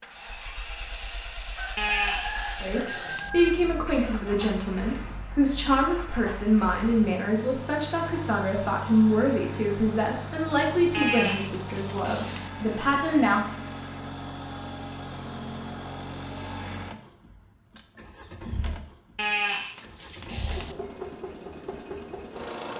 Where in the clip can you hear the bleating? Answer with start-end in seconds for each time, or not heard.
1.8-3.3, 10.9-12.5, 19.1-20.8.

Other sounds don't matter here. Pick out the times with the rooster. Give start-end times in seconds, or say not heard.
1.6-3.5.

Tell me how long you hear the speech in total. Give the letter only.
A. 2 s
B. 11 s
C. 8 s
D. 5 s
B.